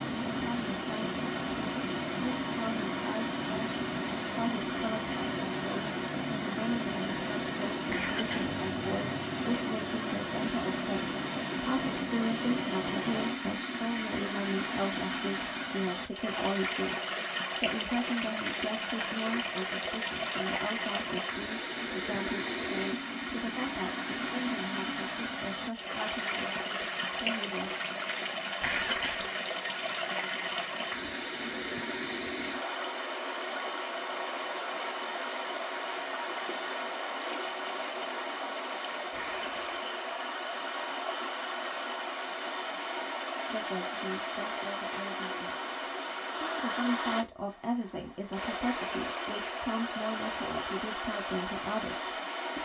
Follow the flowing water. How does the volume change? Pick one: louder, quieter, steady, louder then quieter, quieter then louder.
steady.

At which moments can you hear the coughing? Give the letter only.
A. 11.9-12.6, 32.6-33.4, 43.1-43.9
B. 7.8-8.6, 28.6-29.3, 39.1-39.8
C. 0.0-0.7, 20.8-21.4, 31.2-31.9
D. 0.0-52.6
B.